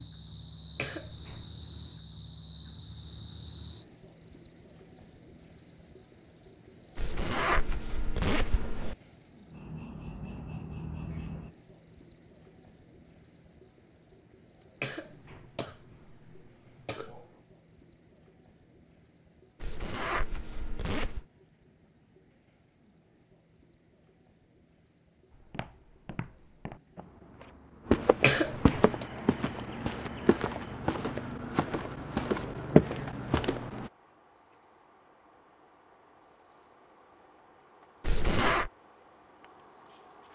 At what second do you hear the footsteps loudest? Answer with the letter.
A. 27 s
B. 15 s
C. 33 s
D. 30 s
C.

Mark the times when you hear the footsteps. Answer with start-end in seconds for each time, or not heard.
25.3-33.9.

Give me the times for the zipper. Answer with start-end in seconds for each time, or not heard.
7.0-8.9, 19.6-21.2, 38.0-38.7.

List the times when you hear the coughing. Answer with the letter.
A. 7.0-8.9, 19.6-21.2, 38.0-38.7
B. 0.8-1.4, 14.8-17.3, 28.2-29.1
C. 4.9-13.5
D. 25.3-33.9
B.